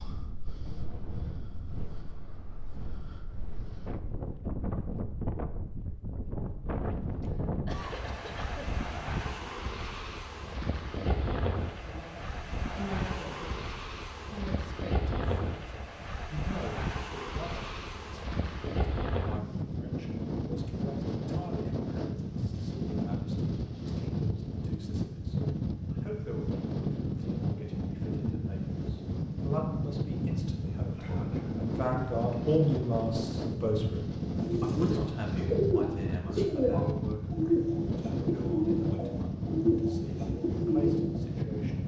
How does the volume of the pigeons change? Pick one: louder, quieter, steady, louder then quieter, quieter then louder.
steady.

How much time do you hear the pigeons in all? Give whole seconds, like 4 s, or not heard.
7 s.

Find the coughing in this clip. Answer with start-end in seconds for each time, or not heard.
7.2-8.7, 30.9-31.6.